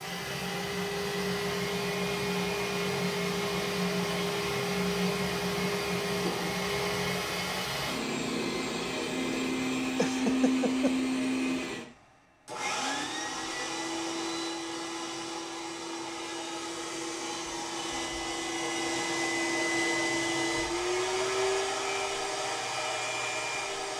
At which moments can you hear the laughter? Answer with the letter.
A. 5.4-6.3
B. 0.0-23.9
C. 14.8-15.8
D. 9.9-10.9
D.